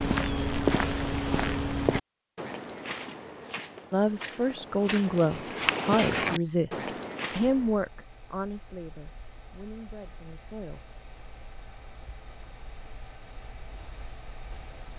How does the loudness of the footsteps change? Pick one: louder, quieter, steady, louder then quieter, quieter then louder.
quieter then louder.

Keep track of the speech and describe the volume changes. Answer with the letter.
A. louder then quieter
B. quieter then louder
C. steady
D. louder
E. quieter
E.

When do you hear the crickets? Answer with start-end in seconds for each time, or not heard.
not heard.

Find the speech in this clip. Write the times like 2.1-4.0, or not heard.
3.9-10.8.